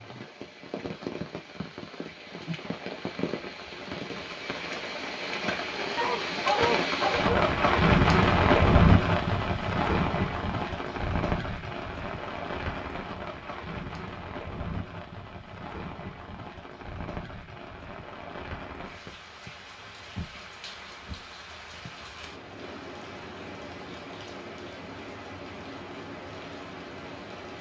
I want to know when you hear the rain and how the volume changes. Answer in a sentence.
The rain can be heard from 0.0 to 27.5 s, getting louder then quieter.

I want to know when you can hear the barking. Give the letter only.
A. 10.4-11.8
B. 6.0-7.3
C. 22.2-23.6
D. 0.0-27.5
B.